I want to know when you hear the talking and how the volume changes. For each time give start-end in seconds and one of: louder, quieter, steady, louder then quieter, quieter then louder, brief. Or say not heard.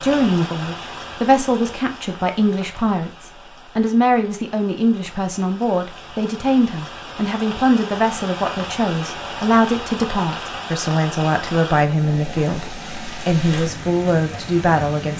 0.0-15.1 steady.